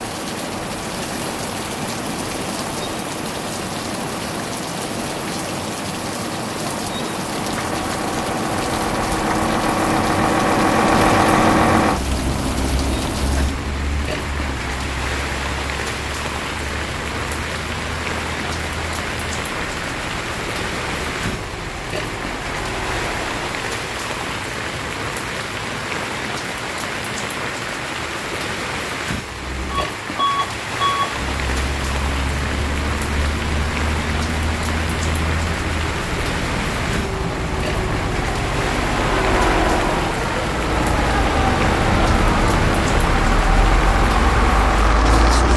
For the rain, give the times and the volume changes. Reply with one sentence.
You can hear the rain from 0.0 to 45.5 s, at a steady volume.